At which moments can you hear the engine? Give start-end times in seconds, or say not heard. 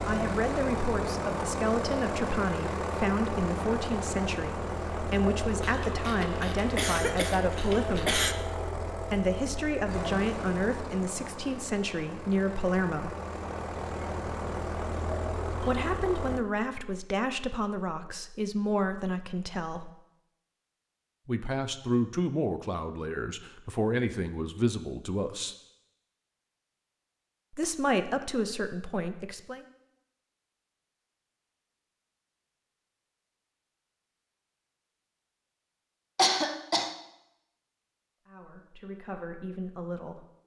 0.0-16.4.